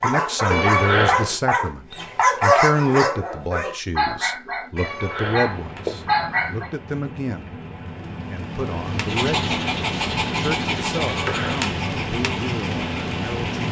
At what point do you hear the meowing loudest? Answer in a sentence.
The loudest moment of the meowing is at 1 second.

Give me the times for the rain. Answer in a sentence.
The rain can be heard from 5.4 to 13.6 s.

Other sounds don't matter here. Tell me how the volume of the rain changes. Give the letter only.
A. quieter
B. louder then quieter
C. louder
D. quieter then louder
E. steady
C.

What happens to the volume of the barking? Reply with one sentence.
The volume of the barking goes down.